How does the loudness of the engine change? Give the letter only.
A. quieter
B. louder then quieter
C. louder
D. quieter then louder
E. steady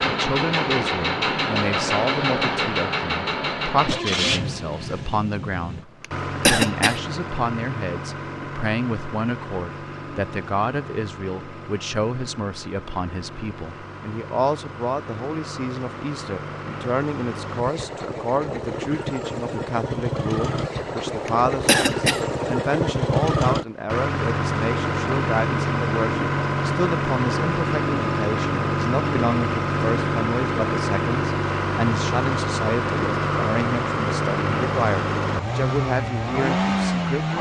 D.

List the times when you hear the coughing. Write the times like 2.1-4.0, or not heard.
6.0-7.0, 21.2-22.2.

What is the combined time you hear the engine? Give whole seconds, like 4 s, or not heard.
37 s.